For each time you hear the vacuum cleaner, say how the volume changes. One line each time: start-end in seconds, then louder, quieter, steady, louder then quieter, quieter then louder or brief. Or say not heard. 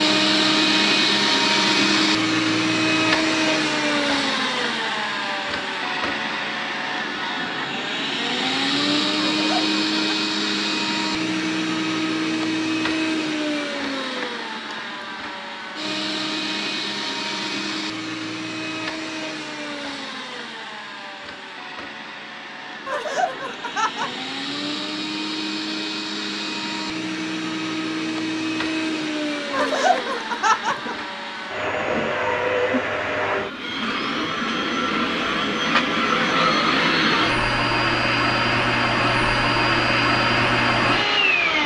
0.0-41.6 quieter then louder.